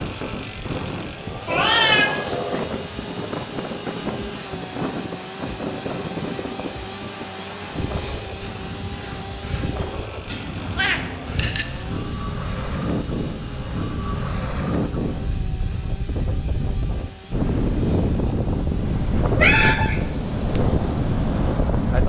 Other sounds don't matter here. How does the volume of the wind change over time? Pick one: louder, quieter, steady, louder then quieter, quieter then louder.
louder.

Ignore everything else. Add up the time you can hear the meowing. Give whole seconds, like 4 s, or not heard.
3 s.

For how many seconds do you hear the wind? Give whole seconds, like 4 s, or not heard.
22 s.